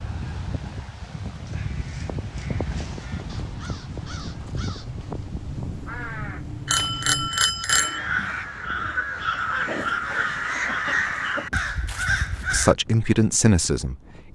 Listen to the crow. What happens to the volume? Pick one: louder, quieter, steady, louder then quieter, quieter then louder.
louder.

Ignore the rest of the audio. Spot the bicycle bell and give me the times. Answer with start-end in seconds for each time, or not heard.
6.7-8.0.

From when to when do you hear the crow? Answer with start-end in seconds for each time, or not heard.
1.4-12.8.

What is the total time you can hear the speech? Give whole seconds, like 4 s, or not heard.
2 s.